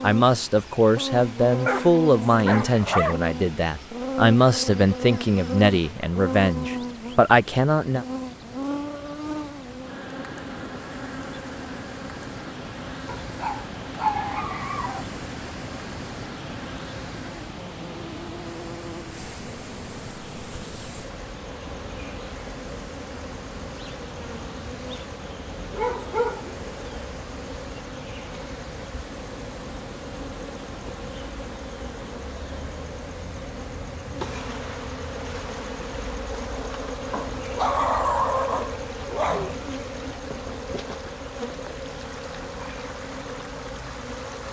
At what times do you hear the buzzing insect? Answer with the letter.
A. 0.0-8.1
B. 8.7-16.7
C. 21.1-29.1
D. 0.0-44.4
D.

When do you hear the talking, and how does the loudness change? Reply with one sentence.
The talking can be heard from 0.0 to 8.1 s, at a steady volume.